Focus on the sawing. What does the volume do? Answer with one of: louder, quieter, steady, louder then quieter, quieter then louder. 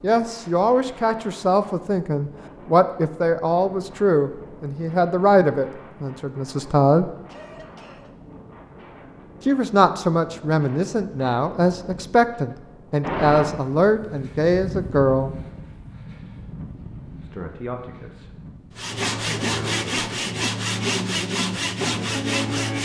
steady.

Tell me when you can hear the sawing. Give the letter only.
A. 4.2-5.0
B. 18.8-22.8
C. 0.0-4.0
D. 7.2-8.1
B.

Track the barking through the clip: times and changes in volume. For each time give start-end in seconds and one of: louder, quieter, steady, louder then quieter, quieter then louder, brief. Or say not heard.
not heard.